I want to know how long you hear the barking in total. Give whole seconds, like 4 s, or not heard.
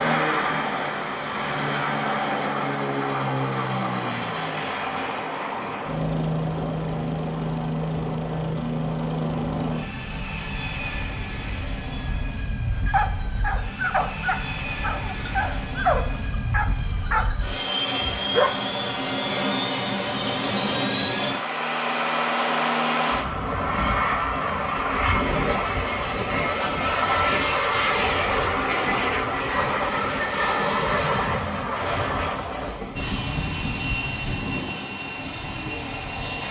6 s.